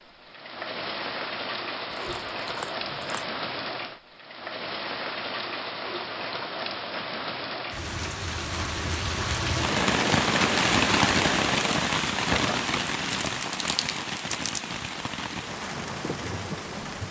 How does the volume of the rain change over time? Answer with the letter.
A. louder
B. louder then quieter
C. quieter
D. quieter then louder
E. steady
B.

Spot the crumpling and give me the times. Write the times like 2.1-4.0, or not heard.
1.9-3.3, 13.2-14.6.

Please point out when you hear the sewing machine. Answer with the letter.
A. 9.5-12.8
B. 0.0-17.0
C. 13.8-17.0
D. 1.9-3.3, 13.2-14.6
A.